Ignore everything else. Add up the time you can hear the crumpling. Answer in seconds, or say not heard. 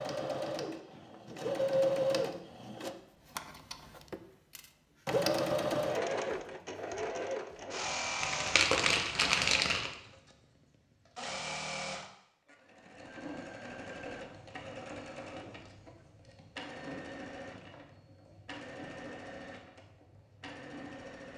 2 s.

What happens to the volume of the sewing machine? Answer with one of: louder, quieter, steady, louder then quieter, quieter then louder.
quieter.